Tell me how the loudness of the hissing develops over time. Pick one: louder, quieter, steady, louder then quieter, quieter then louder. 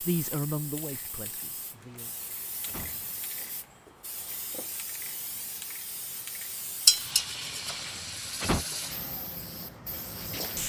louder.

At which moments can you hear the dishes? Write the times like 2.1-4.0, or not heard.
6.8-7.8.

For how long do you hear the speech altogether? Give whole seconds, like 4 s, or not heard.
2 s.